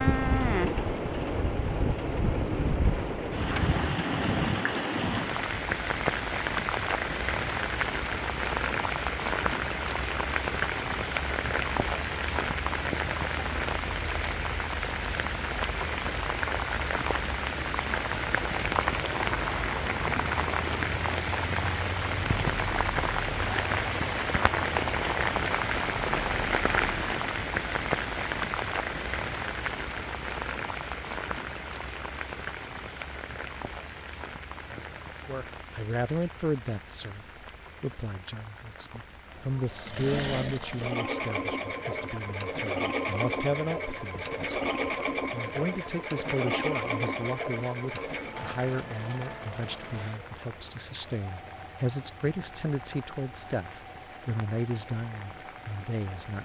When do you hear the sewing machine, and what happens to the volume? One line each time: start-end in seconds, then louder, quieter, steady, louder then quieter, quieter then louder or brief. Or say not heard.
39.2-56.4 quieter.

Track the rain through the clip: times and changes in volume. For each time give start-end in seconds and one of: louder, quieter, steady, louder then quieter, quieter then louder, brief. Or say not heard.
0.0-56.4 quieter.